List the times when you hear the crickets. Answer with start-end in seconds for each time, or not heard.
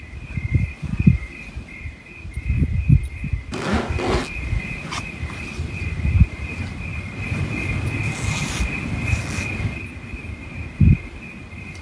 0.0-11.7.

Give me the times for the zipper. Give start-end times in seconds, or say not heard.
3.5-4.3, 8.0-9.5.